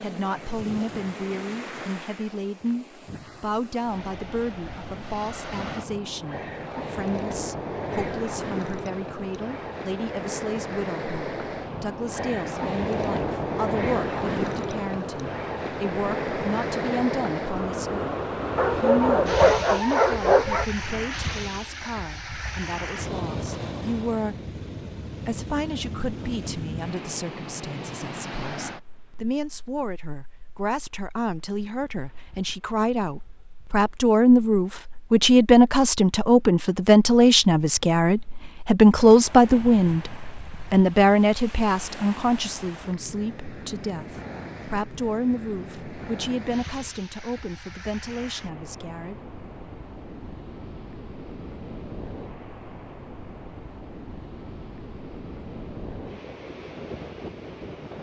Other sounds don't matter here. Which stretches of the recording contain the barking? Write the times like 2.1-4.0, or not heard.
18.6-20.6.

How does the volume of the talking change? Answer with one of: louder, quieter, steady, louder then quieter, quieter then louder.
louder then quieter.